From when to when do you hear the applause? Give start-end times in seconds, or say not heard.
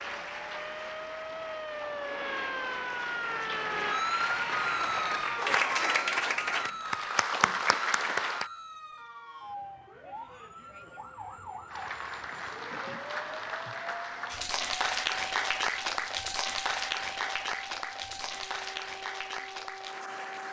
0.0-8.5, 11.7-20.4.